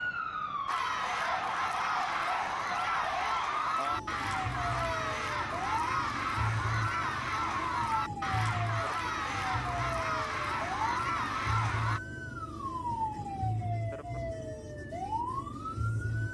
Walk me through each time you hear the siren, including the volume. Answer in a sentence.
The siren can be heard from 0.0 to 16.2 s, at a steady volume.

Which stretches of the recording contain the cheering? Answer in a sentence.
You can hear the cheering from 0.7 to 12.0 s.